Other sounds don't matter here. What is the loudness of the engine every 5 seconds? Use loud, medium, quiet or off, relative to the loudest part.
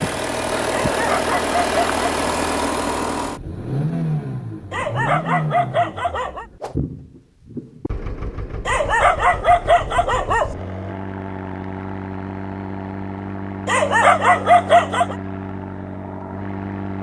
loud, medium, medium, medium.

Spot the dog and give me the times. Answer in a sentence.
The dog can be heard from 0.7 to 2.0 s, from 4.7 to 6.5 s, from 8.7 to 10.6 s and from 13.7 to 15.2 s.